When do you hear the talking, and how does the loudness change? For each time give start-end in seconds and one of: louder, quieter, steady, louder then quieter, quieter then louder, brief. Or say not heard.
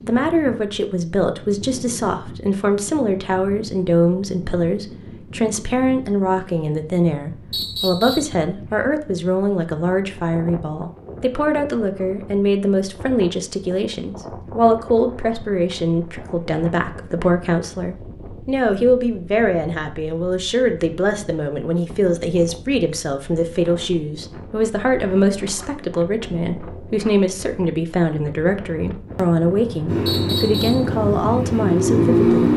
0.0-32.5 steady.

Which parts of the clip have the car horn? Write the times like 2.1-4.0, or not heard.
not heard.